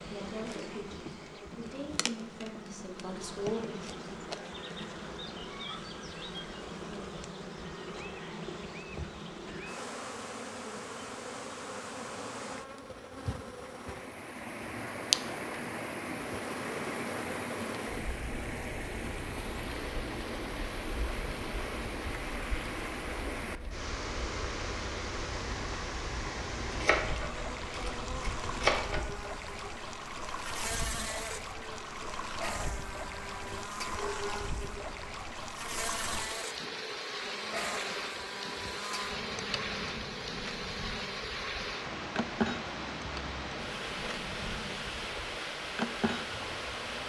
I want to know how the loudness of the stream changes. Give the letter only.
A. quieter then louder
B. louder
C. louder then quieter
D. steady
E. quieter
D.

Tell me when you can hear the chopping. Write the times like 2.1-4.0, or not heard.
26.7-29.1.